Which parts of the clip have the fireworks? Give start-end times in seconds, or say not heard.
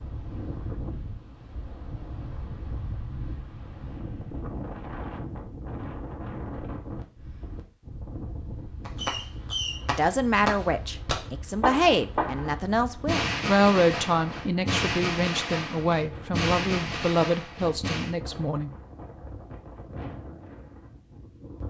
8.8-18.1.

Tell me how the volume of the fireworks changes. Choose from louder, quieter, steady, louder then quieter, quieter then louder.
steady.